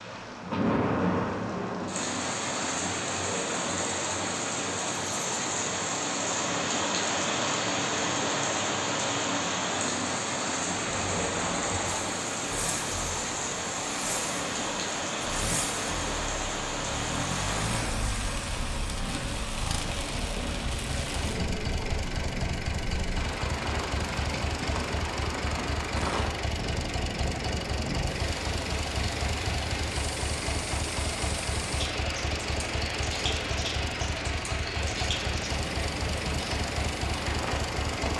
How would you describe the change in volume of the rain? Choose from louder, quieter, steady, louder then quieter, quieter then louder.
quieter.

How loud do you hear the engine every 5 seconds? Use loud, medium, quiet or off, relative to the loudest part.
off, off, loud, loud, loud, loud, loud, loud.